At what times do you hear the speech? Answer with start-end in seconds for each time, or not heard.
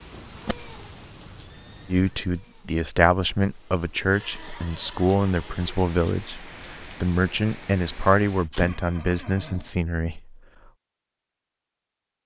1.9-10.4.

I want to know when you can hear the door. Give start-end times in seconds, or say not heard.
7.9-8.8.